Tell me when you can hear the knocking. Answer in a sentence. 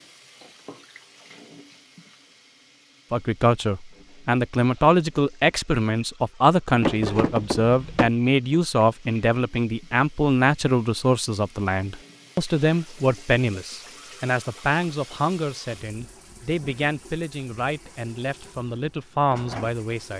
You can hear the knocking from 6.8 to 8.1 s.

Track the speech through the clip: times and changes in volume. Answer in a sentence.
The speech can be heard from 3.1 to 20.1 s, getting quieter.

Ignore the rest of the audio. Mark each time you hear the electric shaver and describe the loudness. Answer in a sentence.
You can't hear the electric shaver here.